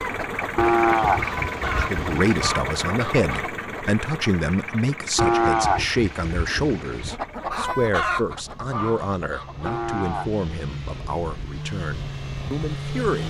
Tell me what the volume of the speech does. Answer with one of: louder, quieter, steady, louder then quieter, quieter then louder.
quieter.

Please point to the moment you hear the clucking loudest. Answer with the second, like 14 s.
8 s.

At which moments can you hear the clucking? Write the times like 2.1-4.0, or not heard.
0.0-3.9, 7.0-9.8.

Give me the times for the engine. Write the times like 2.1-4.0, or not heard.
0.0-13.2.